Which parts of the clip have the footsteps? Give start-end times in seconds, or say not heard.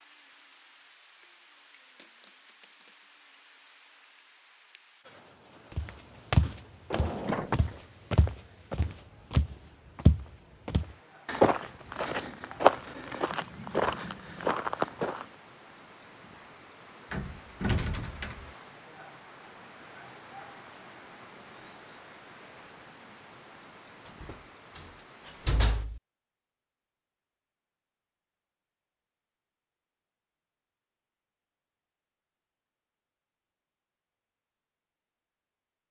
5.8-15.2.